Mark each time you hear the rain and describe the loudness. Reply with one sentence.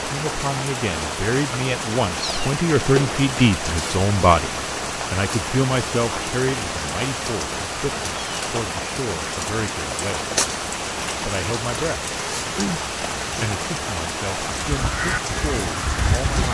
The rain can be heard from 0.0 to 16.5 s, at a steady volume.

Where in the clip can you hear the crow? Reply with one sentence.
You can hear the crow from 14.6 to 16.5 s.